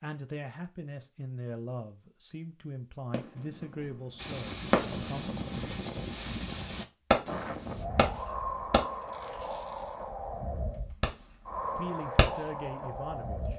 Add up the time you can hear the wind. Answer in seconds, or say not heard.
9 s.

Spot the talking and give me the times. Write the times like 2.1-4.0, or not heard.
0.0-5.2, 11.8-13.5.